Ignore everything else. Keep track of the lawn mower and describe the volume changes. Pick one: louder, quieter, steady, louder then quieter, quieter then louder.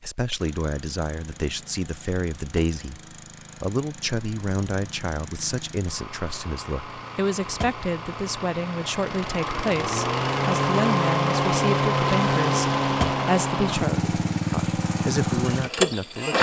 louder.